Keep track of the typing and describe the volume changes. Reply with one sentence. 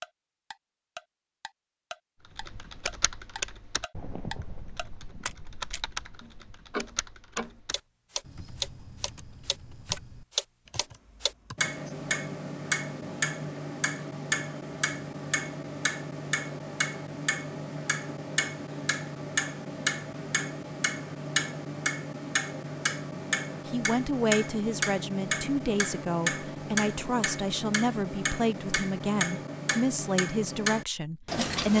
The loudness of the typing goes down.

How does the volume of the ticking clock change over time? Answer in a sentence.
The loudness of the ticking clock goes up.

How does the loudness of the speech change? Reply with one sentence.
The loudness of the speech stays about the same.